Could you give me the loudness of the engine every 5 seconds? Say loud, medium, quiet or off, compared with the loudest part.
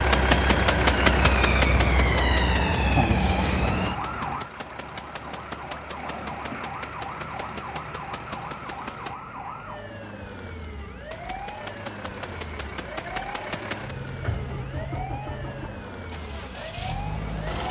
loud, quiet, medium, medium.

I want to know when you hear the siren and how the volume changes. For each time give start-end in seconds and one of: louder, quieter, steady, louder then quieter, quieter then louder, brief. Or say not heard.
0.0-17.6 quieter.